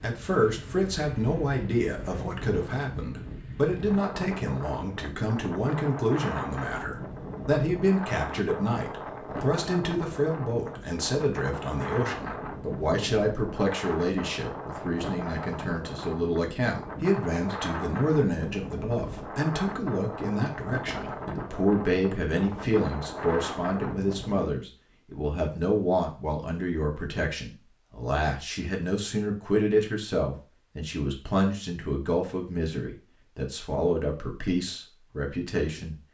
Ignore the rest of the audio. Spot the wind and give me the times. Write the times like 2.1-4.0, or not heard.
0.0-24.5.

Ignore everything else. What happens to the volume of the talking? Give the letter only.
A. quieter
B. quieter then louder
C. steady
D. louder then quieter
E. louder
C.